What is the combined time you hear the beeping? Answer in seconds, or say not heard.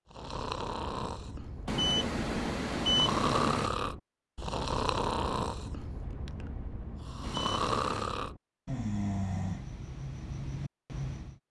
3 s.